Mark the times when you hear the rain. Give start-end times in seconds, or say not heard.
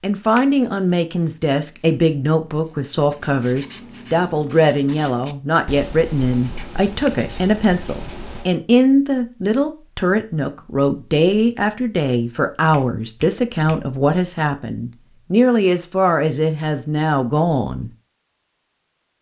not heard.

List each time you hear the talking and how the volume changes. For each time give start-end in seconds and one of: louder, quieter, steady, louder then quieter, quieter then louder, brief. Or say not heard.
0.0-17.9 steady.